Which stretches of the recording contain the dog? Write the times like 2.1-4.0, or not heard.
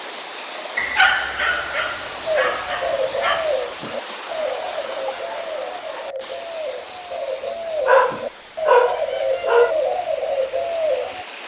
0.8-3.5, 7.8-9.8.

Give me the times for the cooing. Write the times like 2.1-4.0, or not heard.
2.2-11.2.